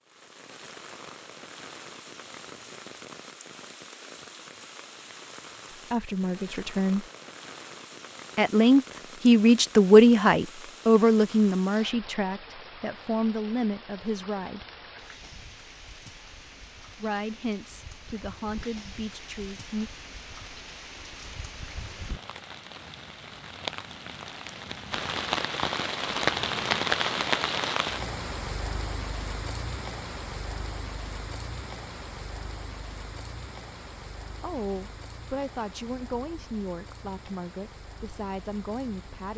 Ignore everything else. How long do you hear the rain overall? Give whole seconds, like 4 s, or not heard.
39 s.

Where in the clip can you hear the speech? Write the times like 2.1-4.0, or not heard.
5.7-7.0, 8.3-14.7, 17.0-19.9, 34.4-39.3.